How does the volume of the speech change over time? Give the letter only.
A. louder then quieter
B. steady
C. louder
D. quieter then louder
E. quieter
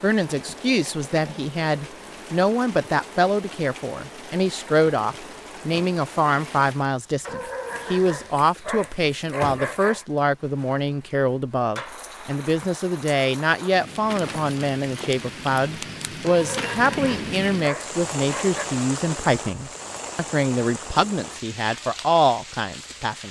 B.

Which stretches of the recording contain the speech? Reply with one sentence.
The speech can be heard from 0.0 to 23.2 s.